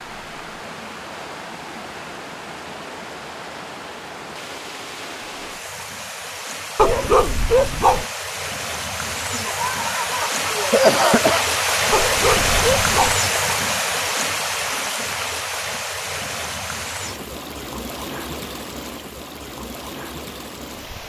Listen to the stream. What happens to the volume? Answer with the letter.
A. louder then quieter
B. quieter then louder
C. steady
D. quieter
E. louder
A.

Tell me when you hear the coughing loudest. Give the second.
11 s.